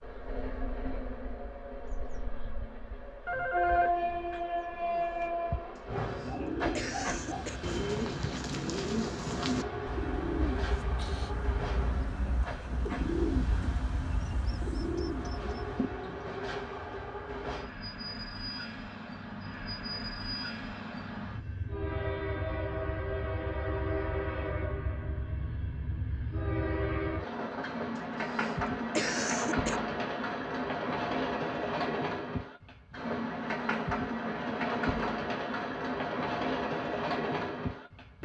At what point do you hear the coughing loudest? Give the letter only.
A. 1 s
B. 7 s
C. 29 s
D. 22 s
C.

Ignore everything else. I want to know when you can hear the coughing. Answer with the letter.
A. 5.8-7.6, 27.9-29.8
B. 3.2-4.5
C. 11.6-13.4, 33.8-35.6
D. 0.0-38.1
A.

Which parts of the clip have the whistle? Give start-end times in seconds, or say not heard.
not heard.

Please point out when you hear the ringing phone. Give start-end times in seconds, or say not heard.
3.2-4.5.